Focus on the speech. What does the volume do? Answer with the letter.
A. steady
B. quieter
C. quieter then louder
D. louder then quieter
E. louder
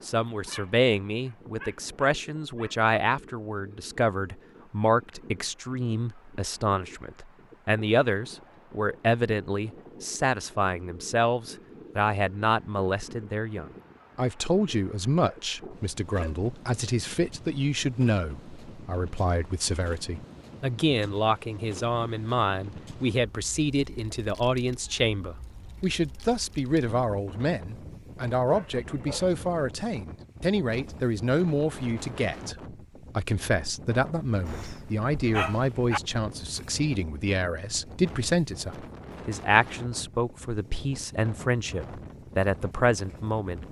A.